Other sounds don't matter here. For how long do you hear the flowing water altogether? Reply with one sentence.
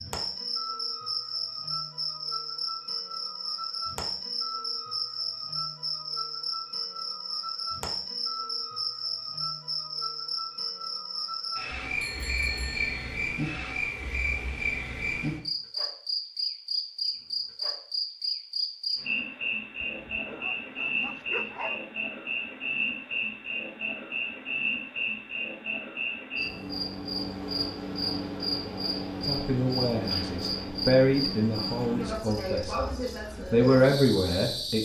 You can't hear the flowing water here.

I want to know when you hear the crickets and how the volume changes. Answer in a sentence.
You can hear the crickets from 0.0 to 34.7 s, at a steady volume.